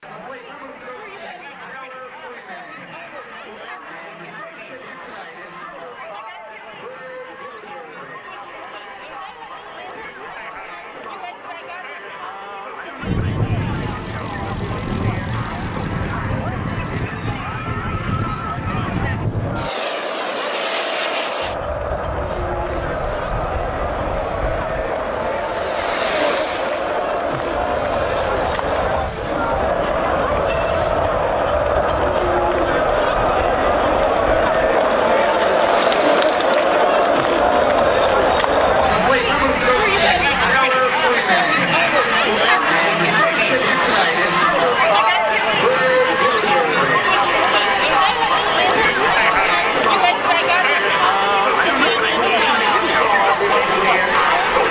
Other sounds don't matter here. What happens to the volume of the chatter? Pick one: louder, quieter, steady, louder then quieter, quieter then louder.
louder.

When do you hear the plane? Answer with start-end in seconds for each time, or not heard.
13.0-40.6.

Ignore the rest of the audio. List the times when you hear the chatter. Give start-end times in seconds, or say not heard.
0.0-54.6.